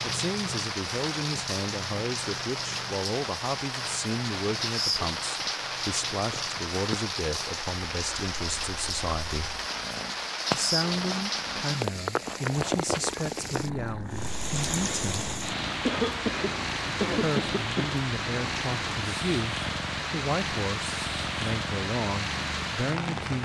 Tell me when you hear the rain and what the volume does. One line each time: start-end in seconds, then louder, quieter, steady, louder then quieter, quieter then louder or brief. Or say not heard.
0.0-23.4 steady.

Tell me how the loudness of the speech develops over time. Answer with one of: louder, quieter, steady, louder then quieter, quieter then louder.
steady.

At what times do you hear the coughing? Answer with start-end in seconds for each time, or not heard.
15.8-17.9.